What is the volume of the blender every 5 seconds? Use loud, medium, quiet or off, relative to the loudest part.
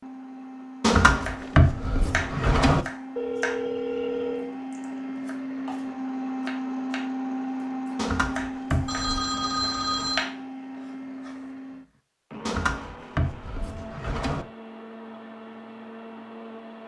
medium, loud, medium, medium.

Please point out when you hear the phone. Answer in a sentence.
You can hear the phone from 3.1 to 4.5 s and from 8.8 to 10.2 s.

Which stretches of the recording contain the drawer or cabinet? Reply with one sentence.
The drawer or cabinet can be heard from 0.8 to 2.9 s, from 8.0 to 9.2 s and from 12.4 to 14.4 s.